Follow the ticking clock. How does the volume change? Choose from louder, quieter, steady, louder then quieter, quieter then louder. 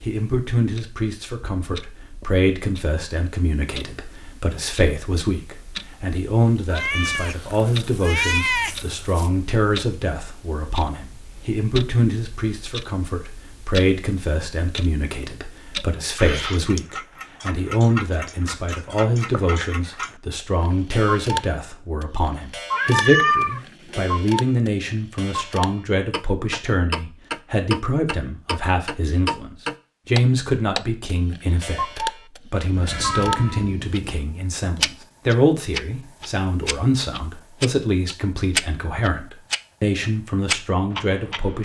louder.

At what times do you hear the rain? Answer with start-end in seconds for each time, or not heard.
not heard.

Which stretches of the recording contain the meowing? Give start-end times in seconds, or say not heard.
6.7-9.3, 22.7-24.1, 32.7-34.2.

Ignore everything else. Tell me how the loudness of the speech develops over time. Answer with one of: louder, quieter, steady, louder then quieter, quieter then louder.
steady.